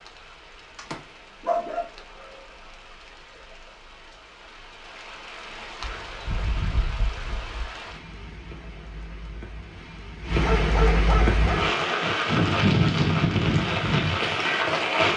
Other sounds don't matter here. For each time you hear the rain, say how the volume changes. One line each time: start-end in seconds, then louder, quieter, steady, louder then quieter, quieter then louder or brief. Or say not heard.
0.0-15.1 louder.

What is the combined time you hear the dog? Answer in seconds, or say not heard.
5 s.